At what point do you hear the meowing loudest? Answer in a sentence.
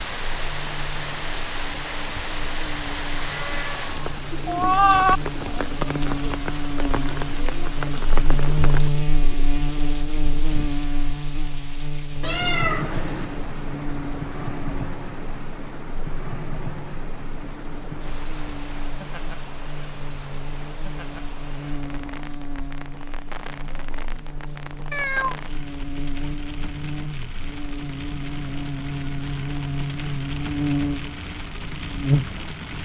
The volume of the meowing peaks at 5 seconds.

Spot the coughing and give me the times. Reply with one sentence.
The coughing can't be heard in this clip.